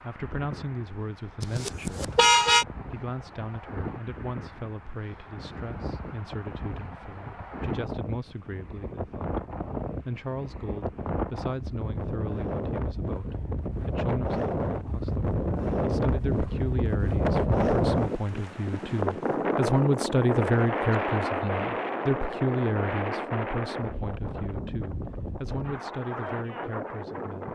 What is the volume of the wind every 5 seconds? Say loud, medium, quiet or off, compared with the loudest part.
quiet, medium, medium, loud, loud, medium.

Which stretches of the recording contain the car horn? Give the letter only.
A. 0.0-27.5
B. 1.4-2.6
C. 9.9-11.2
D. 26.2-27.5
B.